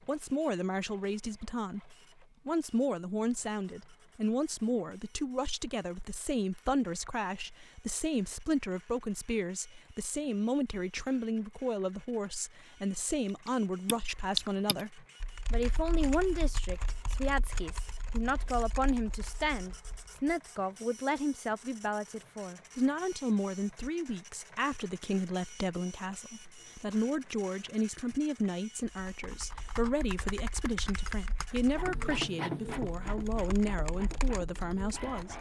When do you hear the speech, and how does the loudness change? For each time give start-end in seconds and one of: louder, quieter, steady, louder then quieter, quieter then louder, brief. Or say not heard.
0.1-35.3 steady.